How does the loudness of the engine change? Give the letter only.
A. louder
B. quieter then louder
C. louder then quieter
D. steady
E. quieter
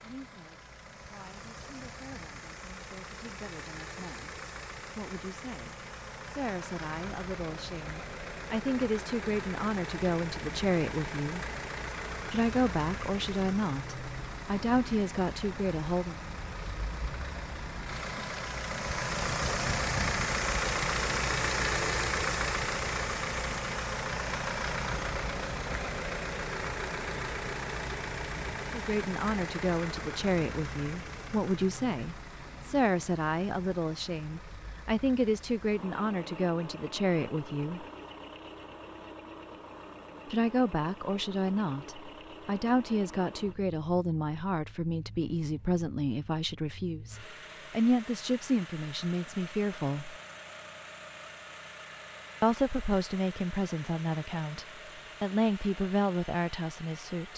C.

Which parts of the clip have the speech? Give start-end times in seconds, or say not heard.
0.0-4.3, 5.0-11.4, 12.3-16.2, 28.7-37.9, 40.2-50.1, 52.4-57.3.